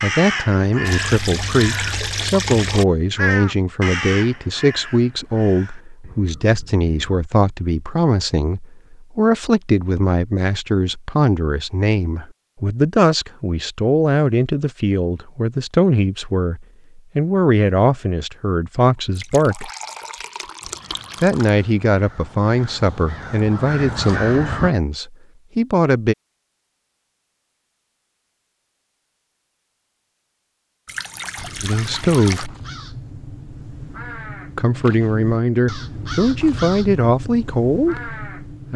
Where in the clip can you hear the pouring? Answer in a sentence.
The pouring can be heard from 0.8 to 2.9 s, from 19.1 to 21.6 s and from 30.9 to 32.5 s.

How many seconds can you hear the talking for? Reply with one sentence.
The talking can be heard for 30 seconds in total.